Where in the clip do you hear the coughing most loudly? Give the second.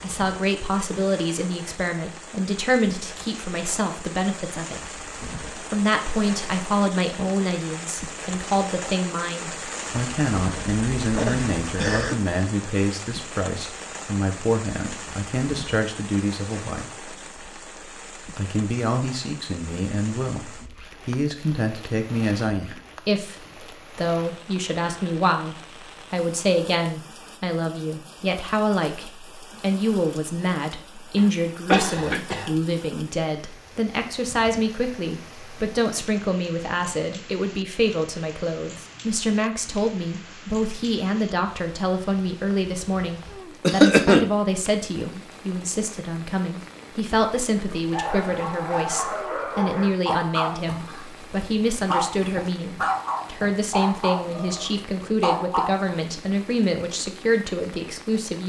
44 s.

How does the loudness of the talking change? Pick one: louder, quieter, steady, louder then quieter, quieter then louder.
steady.